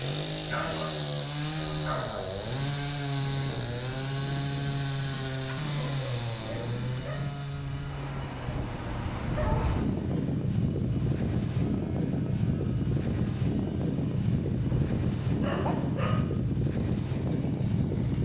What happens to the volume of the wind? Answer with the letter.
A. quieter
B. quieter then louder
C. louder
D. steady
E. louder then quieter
C.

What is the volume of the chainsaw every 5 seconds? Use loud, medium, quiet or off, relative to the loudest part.
loud, loud, quiet, quiet.